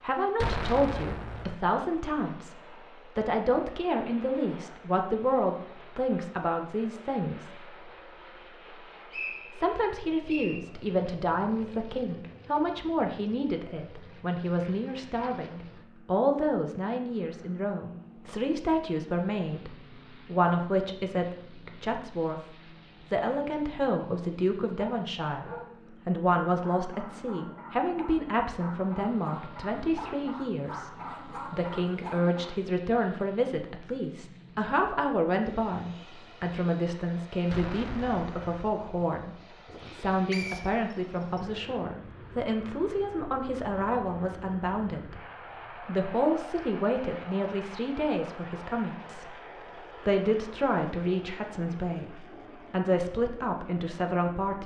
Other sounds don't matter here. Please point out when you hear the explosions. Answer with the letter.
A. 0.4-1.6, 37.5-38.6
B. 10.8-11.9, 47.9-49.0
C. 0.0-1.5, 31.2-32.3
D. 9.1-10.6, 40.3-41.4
A.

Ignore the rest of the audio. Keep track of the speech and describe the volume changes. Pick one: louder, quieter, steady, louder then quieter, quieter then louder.
steady.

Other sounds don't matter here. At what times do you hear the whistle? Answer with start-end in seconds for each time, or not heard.
9.1-10.6, 40.3-41.4.